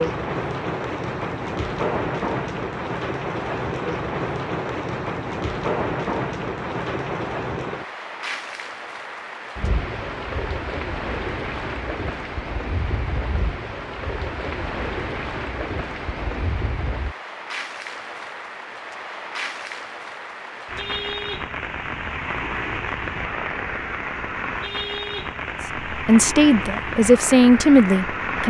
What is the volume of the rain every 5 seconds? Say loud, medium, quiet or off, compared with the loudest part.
loud, loud, loud, medium, loud, loud.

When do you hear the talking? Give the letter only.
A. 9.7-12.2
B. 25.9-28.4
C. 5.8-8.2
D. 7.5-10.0
B.